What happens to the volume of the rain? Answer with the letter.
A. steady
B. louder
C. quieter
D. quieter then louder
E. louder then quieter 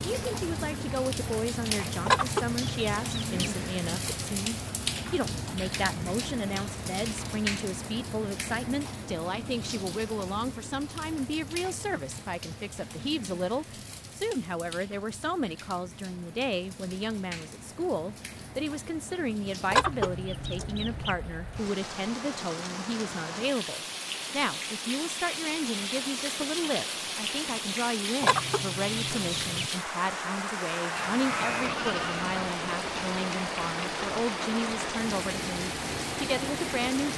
D.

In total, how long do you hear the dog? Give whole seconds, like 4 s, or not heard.
not heard.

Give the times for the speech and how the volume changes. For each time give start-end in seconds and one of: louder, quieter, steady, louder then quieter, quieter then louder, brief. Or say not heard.
0.0-37.1 steady.